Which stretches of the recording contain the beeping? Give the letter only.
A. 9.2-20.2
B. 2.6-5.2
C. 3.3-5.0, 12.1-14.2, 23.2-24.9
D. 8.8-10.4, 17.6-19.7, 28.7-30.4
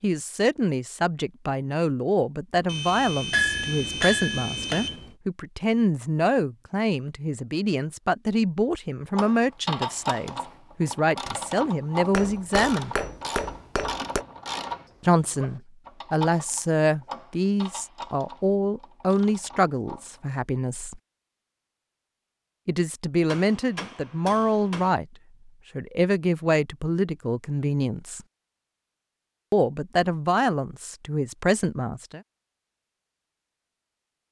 B.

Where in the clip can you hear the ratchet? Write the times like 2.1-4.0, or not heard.
9.2-20.2.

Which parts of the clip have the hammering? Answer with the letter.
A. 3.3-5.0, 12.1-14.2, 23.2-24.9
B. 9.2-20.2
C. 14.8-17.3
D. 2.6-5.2
A.